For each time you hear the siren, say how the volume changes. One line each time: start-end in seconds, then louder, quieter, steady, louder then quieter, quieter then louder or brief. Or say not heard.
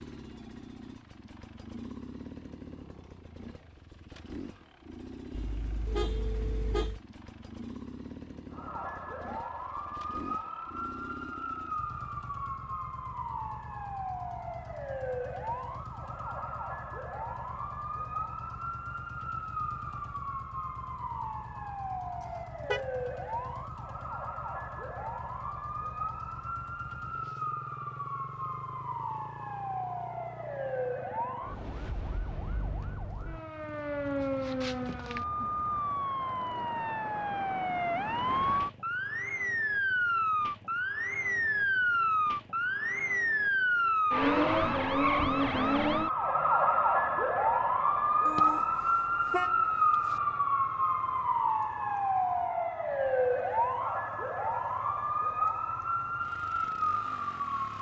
8.5-57.7 louder.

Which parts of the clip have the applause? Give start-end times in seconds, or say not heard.
not heard.